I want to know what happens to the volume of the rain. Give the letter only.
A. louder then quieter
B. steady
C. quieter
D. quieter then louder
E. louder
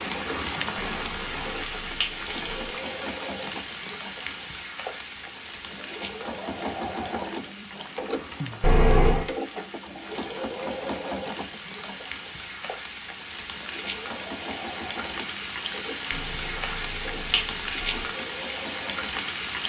D.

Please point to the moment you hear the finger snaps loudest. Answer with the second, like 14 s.
9 s.